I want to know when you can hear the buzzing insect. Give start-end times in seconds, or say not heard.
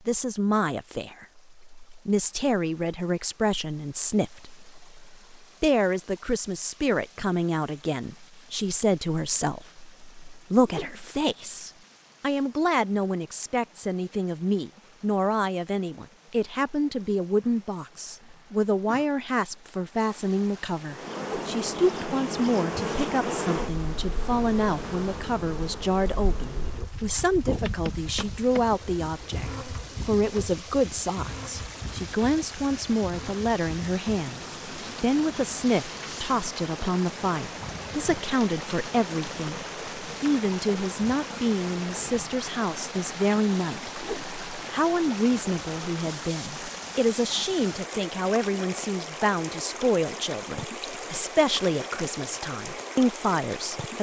20.9-42.2.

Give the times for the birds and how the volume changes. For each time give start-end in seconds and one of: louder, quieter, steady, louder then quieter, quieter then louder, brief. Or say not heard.
not heard.